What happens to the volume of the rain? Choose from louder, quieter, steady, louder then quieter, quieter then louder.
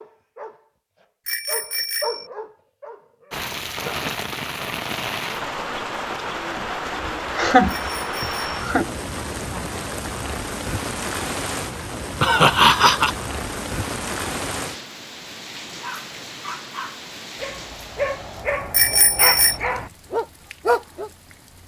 quieter.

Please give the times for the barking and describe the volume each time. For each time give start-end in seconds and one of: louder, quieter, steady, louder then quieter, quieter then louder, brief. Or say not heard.
0.0-4.0 louder then quieter
15.8-21.1 louder.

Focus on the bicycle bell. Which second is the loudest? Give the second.
19 s.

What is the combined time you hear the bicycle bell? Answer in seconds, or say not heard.
3 s.